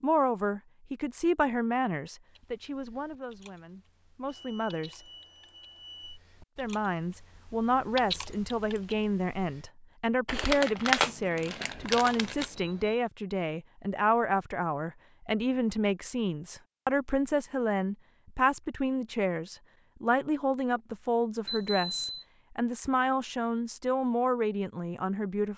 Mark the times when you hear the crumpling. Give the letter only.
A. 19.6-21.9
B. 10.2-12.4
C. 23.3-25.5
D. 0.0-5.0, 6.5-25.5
B.